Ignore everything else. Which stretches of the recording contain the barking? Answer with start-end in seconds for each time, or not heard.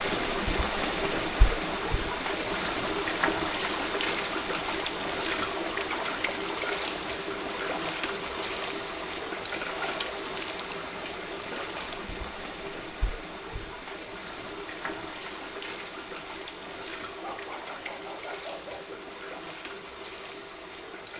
17.2-19.0.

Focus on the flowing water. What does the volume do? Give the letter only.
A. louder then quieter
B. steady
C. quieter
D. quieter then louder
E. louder
C.